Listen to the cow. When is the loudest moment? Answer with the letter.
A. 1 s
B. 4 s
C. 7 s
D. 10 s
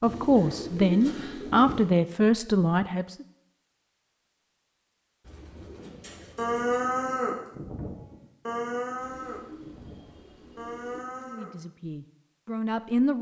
C.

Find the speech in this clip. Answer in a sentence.
You can hear the speech from 0.0 to 3.2 s and from 11.2 to 13.1 s.